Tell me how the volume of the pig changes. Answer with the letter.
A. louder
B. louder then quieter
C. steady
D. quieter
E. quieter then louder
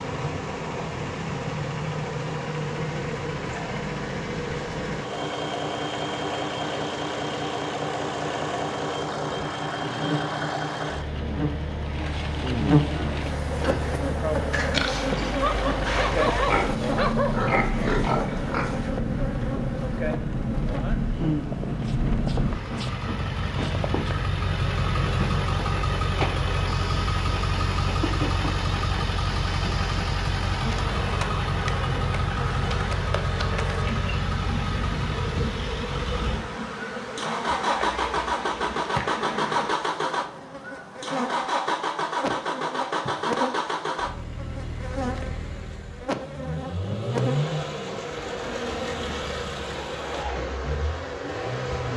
A.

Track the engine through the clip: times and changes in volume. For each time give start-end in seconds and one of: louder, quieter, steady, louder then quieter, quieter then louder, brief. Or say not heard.
0.0-51.9 steady.